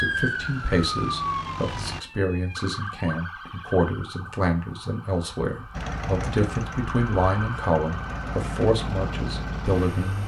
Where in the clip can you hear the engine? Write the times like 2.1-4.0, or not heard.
0.1-2.0, 5.7-10.2.